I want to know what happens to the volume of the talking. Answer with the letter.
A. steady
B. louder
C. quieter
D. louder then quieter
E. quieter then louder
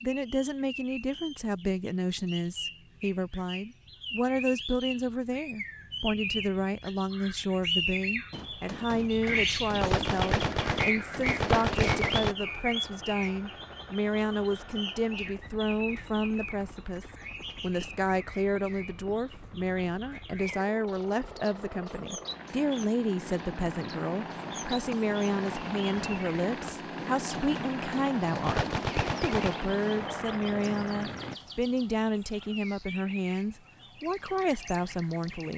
A.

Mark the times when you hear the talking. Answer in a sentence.
You can hear the talking from 0.0 to 35.5 s.